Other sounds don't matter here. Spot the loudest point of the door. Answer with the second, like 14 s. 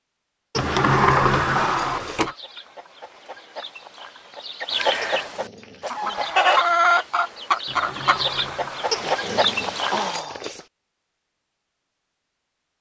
1 s.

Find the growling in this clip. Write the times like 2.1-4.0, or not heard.
0.5-2.2, 5.0-6.8, 8.9-10.7.